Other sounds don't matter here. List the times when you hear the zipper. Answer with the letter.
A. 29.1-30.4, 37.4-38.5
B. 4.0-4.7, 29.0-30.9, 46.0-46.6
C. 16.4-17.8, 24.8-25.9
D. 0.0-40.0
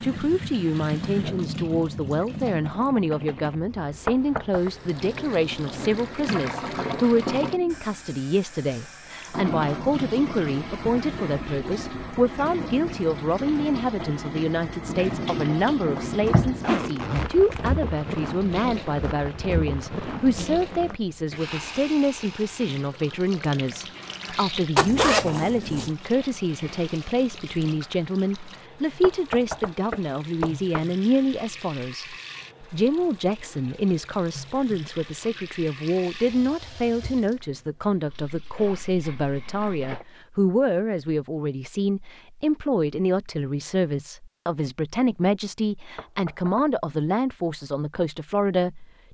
C.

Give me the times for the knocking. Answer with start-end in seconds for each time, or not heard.
4.0-4.7, 29.0-30.9, 46.0-46.6.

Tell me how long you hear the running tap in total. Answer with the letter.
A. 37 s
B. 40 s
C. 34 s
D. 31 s
B.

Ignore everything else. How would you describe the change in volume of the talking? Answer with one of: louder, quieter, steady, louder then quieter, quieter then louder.
steady.